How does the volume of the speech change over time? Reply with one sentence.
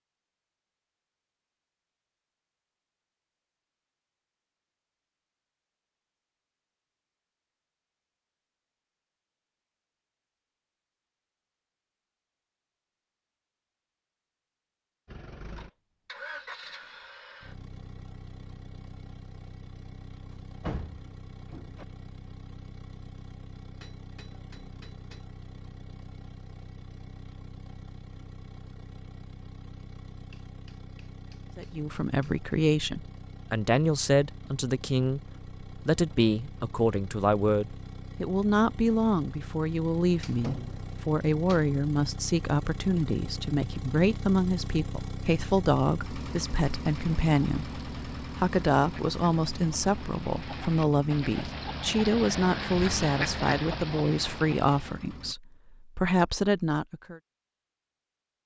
The loudness of the speech stays about the same.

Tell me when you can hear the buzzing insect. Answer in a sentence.
You can't hear the buzzing insect here.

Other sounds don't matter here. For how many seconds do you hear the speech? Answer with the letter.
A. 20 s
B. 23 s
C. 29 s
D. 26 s
D.